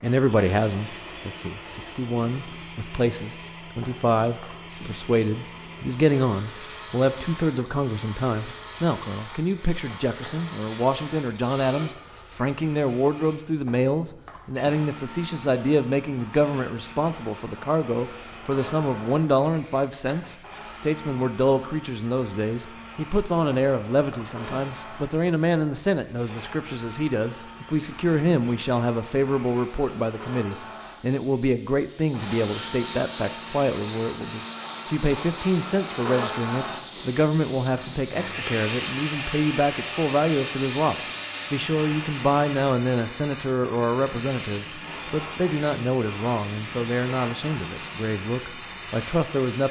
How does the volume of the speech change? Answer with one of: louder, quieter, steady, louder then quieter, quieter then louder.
steady.